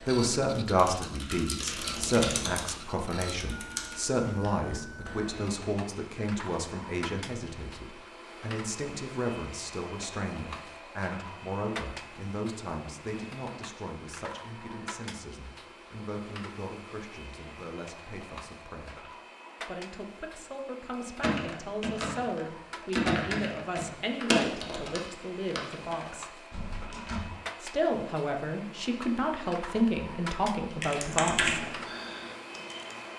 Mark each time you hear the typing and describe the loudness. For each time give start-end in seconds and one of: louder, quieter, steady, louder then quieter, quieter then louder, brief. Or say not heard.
0.0-5.5 louder then quieter
21.2-27.2 louder then quieter
30.6-33.1 brief.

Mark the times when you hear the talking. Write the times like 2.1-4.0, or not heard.
0.0-26.4, 27.6-31.6.